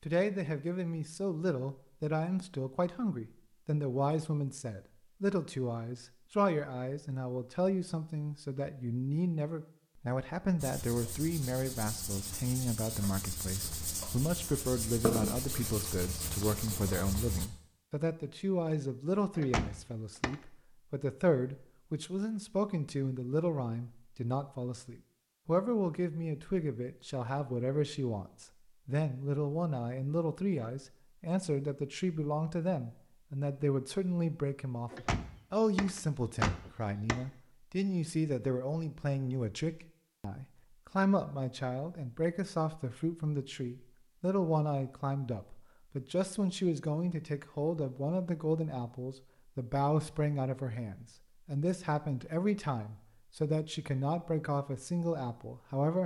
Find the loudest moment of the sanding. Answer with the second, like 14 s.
15 s.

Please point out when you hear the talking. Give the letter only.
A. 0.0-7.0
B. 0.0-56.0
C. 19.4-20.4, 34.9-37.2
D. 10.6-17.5
B.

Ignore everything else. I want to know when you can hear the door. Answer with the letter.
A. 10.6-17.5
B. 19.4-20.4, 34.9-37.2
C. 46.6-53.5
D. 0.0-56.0
B.